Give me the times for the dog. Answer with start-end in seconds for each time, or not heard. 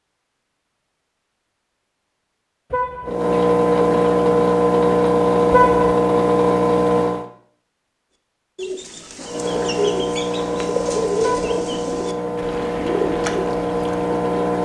not heard.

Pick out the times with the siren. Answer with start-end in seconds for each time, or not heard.
not heard.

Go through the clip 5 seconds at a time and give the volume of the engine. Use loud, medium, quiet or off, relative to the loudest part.
loud, loud, medium.